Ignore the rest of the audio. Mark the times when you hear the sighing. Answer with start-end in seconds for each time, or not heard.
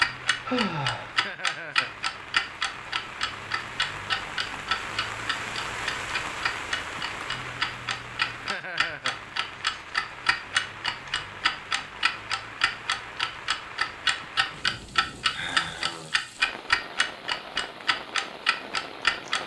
0.5-1.1, 15.3-16.1.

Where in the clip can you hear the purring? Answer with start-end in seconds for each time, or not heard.
not heard.